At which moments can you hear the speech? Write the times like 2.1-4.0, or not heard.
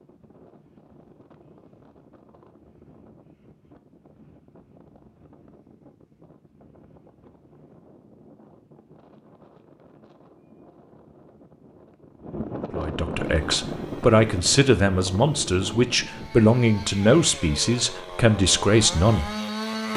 12.8-19.3.